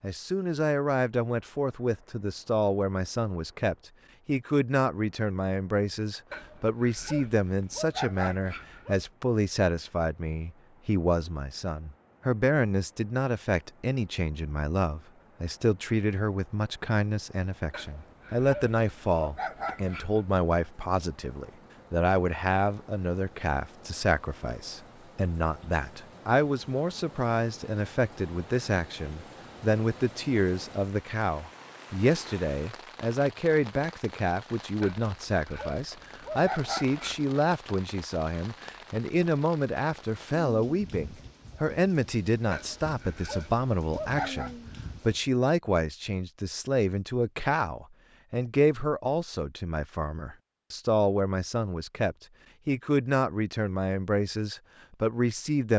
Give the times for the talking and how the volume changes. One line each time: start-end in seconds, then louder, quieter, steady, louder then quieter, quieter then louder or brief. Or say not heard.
0.0-55.7 steady.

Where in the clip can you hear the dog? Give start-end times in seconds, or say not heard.
6.3-9.1, 17.7-20.2, 34.8-37.2, 42.5-44.5.